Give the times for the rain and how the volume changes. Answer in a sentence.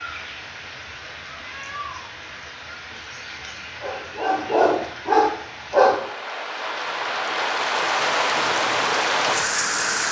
The rain can be heard from 0.0 to 10.0 s, getting louder.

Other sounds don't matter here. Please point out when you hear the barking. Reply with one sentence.
You can hear the barking from 3.7 to 6.1 s.